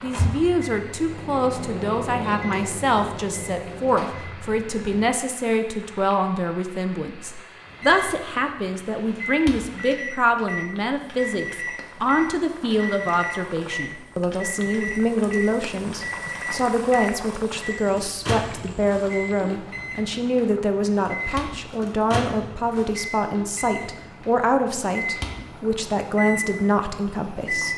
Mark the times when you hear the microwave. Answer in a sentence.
The microwave can be heard from 0.0 to 5.1 s and from 7.7 to 27.7 s.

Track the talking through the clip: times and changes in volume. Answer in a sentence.
The talking can be heard from 0.0 to 27.7 s, at a steady volume.